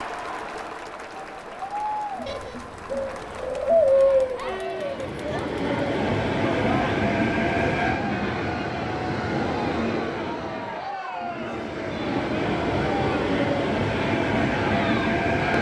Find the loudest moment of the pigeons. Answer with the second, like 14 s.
4 s.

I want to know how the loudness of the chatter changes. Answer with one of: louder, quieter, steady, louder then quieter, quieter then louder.
steady.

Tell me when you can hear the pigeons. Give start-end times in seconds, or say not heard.
2.2-4.6.